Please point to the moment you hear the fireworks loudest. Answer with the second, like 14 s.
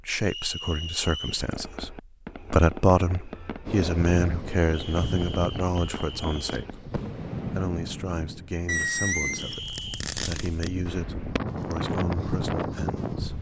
9 s.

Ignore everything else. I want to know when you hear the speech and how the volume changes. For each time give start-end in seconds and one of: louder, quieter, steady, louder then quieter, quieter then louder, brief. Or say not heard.
0.0-13.3 quieter.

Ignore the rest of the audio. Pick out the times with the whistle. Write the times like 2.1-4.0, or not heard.
0.2-1.5, 4.7-6.7, 9.3-10.1.